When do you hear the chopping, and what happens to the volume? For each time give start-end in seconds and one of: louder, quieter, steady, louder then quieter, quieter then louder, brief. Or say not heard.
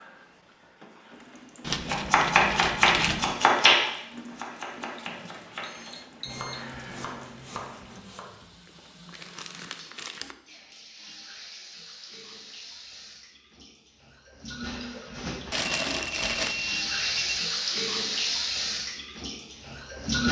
1.9-8.4 quieter.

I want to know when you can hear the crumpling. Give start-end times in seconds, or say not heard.
1.6-3.4, 8.7-10.3, 15.5-16.6.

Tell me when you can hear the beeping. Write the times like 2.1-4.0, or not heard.
5.0-6.7, 15.7-17.5.